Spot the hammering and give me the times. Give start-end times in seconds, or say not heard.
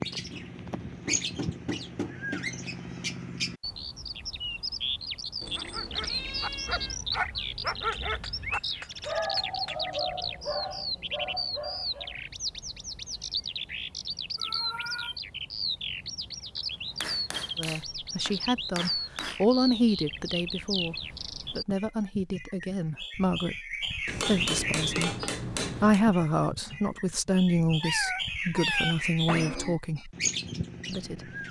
0.3-2.5, 7.9-9.8, 17.0-19.4, 24.1-26.0.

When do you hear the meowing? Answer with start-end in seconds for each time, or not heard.
5.4-7.0, 14.3-15.2, 27.8-29.8.